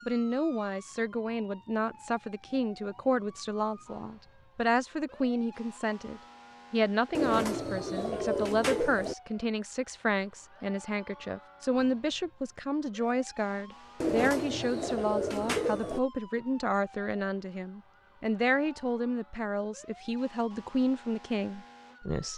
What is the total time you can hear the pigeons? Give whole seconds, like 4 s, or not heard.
4 s.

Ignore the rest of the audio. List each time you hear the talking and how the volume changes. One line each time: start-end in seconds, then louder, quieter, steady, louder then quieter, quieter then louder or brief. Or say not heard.
0.1-22.3 steady.